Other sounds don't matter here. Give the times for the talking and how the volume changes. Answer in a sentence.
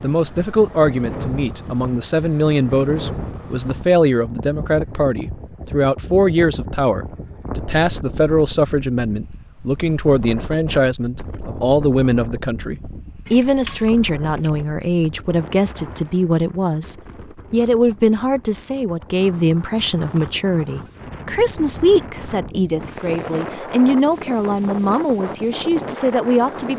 You can hear the talking from 0.0 to 26.7 s, at a steady volume.